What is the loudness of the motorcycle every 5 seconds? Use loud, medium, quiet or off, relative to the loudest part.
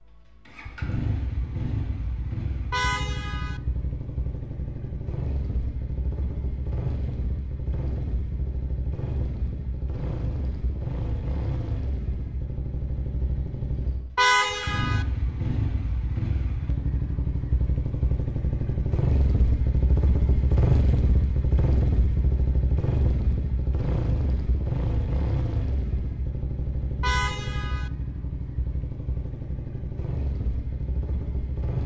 medium, medium, medium, loud, loud, medium, medium.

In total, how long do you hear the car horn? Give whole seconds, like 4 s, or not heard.
3 s.